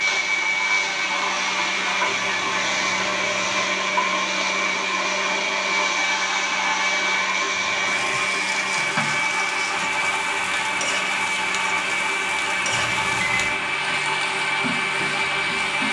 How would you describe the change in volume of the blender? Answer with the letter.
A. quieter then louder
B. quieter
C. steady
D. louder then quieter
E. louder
C.